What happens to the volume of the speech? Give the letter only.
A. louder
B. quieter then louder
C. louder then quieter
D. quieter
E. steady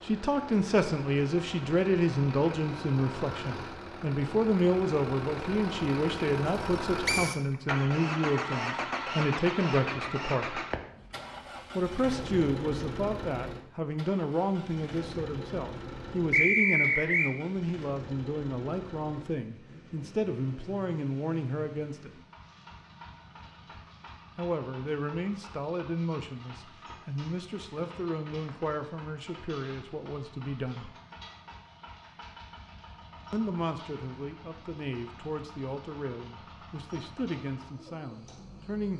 D.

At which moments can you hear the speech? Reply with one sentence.
You can hear the speech from 0.0 to 10.6 s, from 11.8 to 22.1 s, from 24.4 to 30.9 s and from 33.3 to 38.9 s.